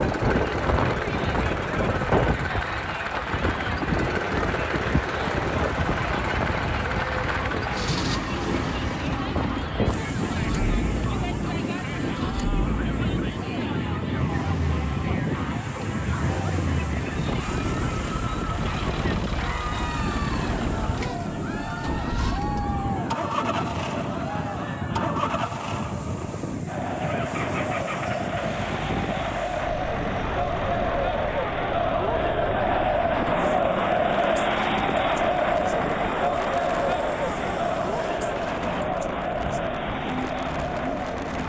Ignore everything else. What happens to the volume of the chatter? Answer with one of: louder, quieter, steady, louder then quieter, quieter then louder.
louder.